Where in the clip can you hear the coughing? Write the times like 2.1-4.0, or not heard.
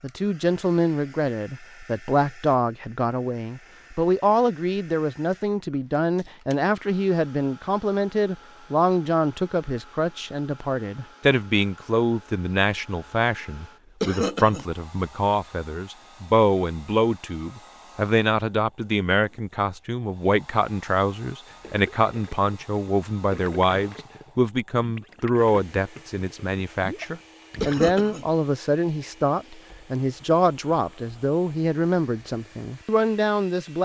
14.0-14.7, 27.6-28.2.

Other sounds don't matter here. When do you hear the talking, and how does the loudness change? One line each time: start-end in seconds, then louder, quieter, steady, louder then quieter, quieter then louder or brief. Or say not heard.
0.0-33.8 steady.